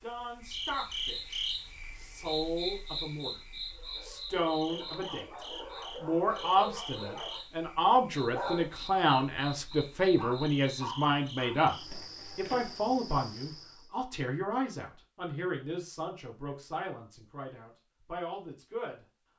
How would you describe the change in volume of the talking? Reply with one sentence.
The loudness of the talking goes up, then down.